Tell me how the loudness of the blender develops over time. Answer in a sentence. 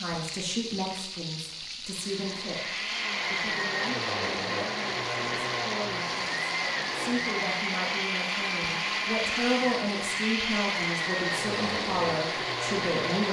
The volume of the blender stays about the same.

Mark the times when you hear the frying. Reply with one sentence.
You can hear the frying from 0.0 to 13.2 s.